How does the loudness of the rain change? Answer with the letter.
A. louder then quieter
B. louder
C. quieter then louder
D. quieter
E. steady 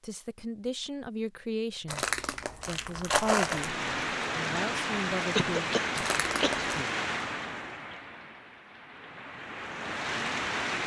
C.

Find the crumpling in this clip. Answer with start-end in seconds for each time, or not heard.
1.9-3.8, 6.0-6.8.